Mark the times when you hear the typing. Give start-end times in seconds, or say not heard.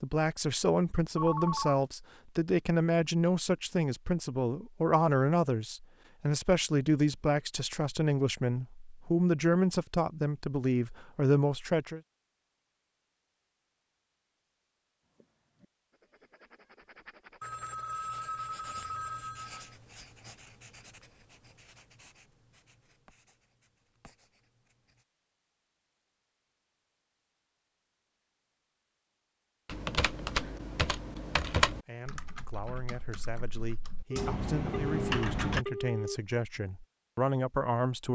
29.6-35.6.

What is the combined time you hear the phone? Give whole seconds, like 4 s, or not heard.
5 s.